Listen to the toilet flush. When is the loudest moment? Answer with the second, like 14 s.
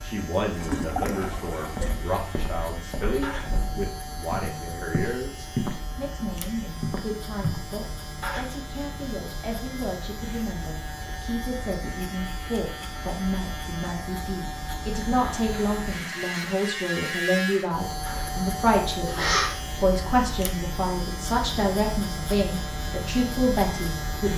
1 s.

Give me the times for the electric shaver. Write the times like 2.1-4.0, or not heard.
0.0-24.3.